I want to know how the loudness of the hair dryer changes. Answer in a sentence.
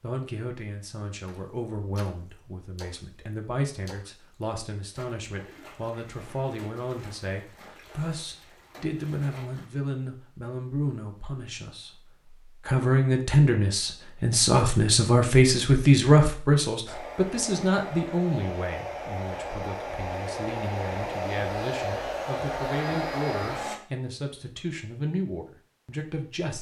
The volume of the hair dryer goes up.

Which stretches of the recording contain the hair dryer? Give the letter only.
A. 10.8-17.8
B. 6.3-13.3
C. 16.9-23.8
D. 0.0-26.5
C.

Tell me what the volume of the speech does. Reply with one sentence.
The volume of the speech goes up, then down.